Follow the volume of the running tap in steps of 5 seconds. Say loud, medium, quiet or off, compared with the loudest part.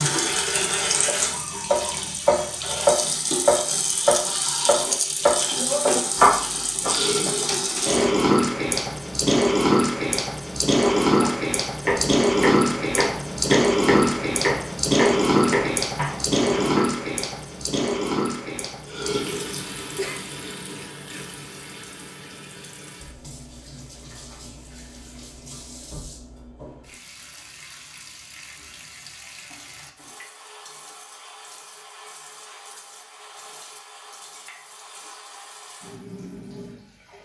medium, loud, loud, loud, quiet, quiet, quiet, quiet.